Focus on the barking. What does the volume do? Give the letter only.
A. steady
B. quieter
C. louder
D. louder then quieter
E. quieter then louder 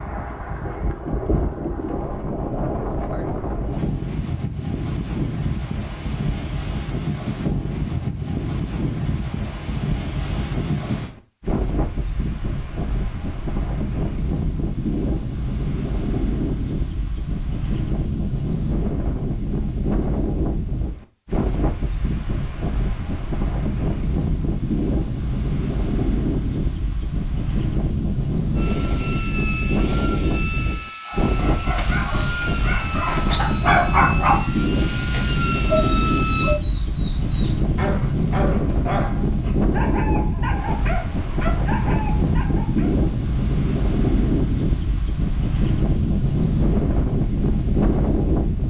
D.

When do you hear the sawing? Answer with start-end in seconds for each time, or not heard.
28.6-36.6.